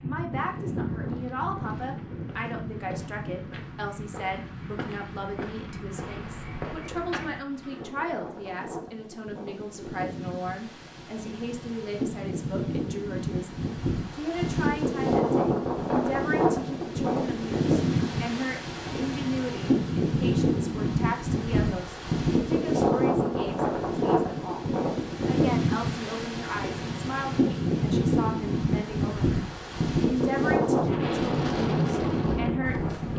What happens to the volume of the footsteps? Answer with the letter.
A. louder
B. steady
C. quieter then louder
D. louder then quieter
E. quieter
A.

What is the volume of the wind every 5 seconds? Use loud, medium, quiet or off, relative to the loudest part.
medium, quiet, medium, loud, loud, loud, loud.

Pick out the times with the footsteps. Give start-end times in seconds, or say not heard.
0.3-7.4.